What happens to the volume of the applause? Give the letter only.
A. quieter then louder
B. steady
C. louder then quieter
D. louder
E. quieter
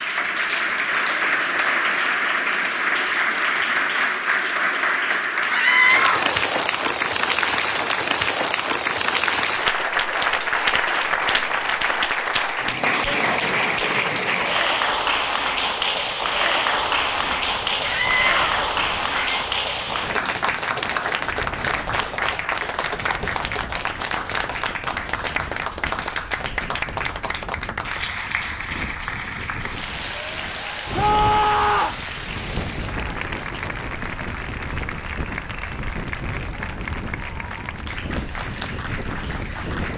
E.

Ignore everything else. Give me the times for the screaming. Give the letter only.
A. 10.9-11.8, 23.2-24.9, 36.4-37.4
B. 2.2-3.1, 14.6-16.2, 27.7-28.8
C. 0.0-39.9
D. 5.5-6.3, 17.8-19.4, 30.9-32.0
D.